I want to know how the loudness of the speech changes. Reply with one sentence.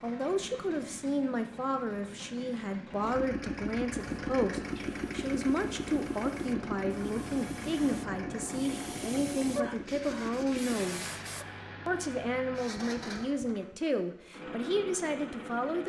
The loudness of the speech stays about the same.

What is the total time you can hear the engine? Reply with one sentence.
The engine can be heard for 16 seconds in total.